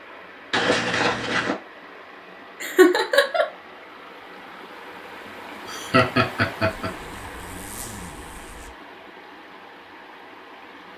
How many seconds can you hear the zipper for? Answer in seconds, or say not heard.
3 s.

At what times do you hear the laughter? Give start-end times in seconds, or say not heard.
2.6-3.5, 5.7-6.9.